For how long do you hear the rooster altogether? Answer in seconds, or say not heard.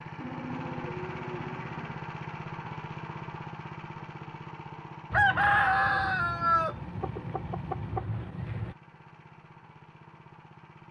4 s.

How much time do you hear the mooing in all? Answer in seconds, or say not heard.
2 s.